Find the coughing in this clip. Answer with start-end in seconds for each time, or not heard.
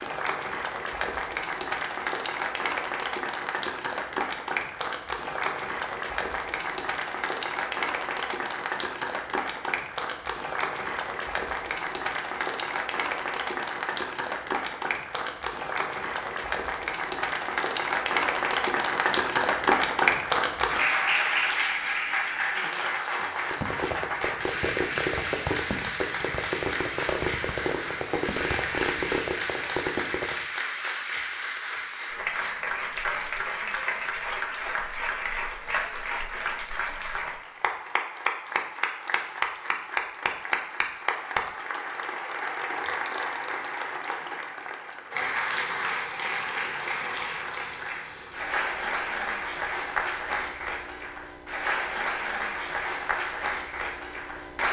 not heard.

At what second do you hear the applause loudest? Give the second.
20 s.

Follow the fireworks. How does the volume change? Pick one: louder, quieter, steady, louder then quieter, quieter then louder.
steady.